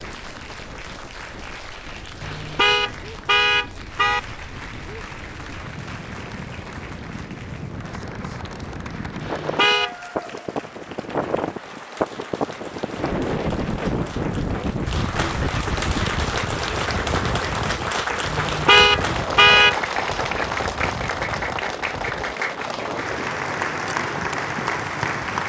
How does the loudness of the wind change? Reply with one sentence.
The volume of the wind goes up, then down.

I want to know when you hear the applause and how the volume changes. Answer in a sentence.
The applause can be heard from 0.0 to 25.4 s, getting louder.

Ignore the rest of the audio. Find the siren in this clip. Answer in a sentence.
You can't hear the siren here.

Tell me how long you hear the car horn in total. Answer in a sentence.
The car horn can be heard for 4 seconds in total.